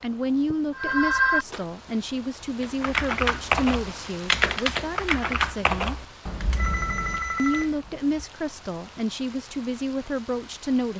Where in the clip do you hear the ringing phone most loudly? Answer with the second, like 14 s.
1 s.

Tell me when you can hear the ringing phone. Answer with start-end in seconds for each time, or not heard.
0.8-1.6, 6.5-7.8.